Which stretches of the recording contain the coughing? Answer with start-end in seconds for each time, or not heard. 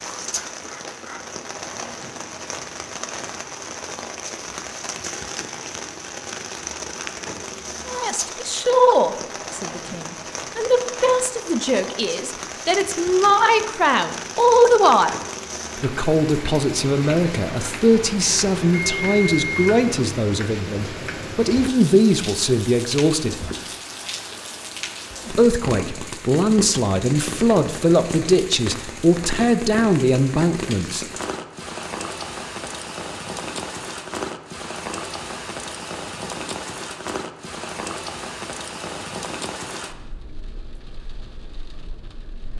0.3-1.3.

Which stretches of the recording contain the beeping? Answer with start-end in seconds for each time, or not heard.
18.6-19.7.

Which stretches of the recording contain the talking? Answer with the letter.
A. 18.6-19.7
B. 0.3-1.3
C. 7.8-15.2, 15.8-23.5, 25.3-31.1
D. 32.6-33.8
C.